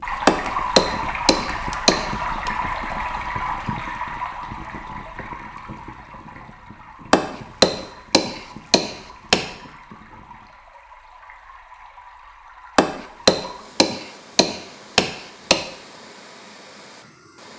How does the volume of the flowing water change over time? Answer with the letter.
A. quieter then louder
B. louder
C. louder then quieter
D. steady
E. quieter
E.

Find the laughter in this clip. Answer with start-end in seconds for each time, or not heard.
not heard.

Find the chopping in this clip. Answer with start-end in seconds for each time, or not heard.
0.2-2.5, 7.1-9.4, 12.8-15.6.